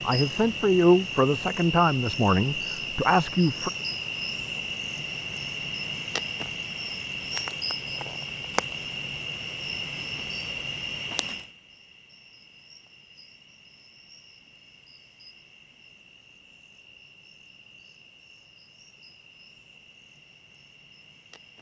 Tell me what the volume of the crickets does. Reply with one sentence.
The loudness of the crickets goes down.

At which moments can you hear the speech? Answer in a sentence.
You can hear the speech from 0.1 to 3.7 s.